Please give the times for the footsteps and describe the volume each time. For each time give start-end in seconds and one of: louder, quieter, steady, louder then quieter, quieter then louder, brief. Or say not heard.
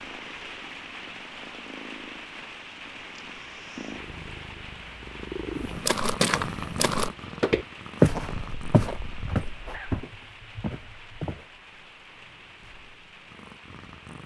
5.5-11.4 louder then quieter.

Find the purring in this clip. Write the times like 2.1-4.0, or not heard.
0.0-14.2.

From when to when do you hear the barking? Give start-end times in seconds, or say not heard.
8.1-10.1.